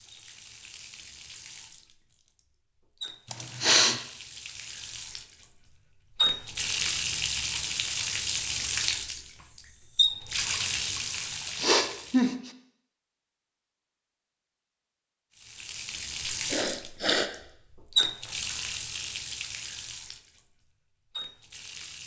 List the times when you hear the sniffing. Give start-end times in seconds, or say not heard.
3.3-4.0, 11.6-12.5, 16.3-17.3.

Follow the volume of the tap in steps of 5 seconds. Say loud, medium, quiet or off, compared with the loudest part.
quiet, loud, loud, loud, quiet.